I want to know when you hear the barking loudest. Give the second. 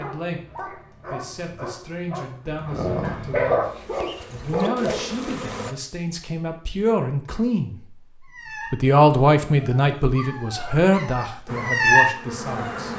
12 s.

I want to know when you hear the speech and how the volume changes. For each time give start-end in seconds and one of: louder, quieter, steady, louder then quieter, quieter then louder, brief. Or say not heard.
0.0-7.8 louder
8.7-12.9 quieter.